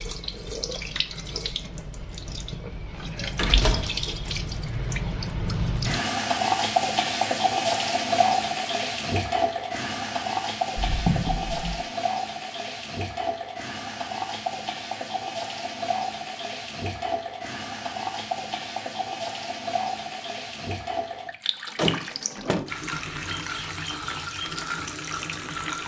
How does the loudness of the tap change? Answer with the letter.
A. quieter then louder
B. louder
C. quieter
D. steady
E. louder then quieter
E.